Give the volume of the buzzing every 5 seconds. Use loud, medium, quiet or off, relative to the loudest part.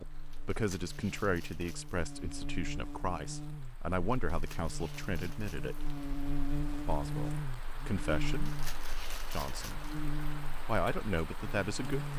medium, loud, loud.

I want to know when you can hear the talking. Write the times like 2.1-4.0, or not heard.
0.0-5.8, 6.8-8.5, 9.3-9.8, 10.7-12.1.